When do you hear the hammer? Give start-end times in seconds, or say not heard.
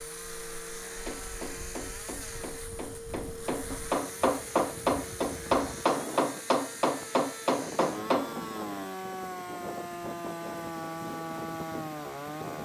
1.1-8.3.